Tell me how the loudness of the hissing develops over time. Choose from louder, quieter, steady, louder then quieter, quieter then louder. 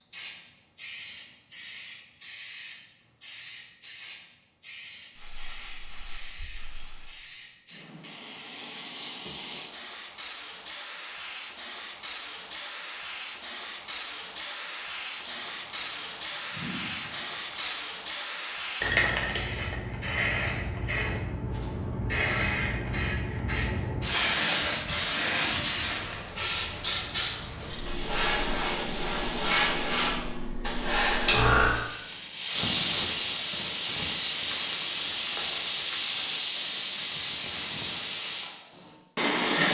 louder.